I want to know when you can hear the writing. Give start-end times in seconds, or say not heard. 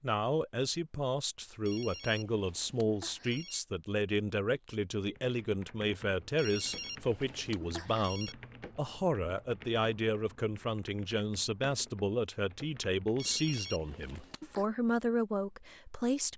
not heard.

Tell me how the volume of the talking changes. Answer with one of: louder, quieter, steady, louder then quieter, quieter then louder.
steady.